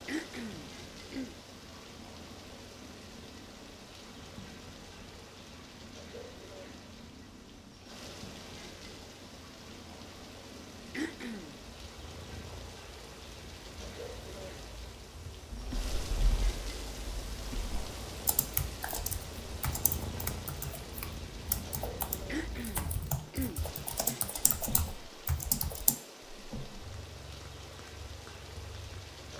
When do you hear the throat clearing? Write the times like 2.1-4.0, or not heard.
0.1-1.4, 10.9-11.6, 22.2-23.6.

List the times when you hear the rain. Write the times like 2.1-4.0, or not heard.
0.0-29.3.